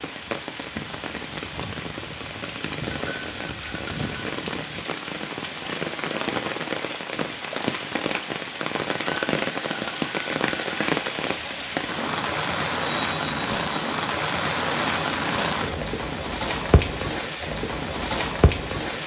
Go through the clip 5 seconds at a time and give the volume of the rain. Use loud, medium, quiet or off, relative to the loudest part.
medium, loud, loud, loud.